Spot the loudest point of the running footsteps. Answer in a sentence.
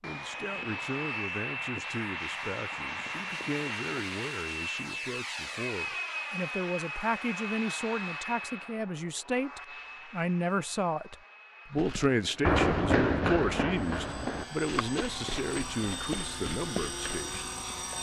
The loudest moment of the running footsteps is at 13 seconds.